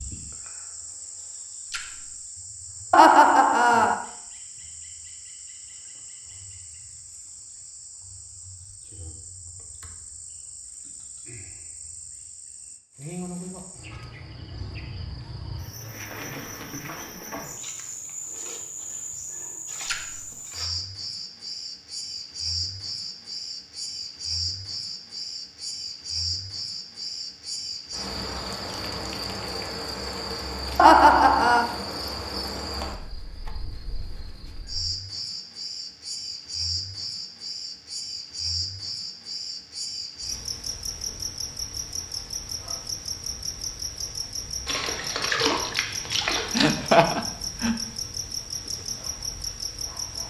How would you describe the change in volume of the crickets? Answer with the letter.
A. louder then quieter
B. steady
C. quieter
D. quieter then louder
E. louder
E.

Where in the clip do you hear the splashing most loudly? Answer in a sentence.
The volume of the splashing peaks at 45 seconds.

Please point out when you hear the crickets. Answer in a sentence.
You can hear the crickets from 0.0 to 50.2 s.